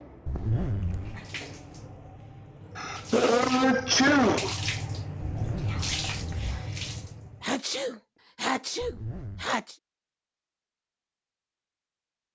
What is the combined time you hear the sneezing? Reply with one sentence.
The sneezing can be heard for 4 seconds in total.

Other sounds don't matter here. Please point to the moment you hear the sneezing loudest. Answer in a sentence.
The loudest moment of the sneezing is at 4 seconds.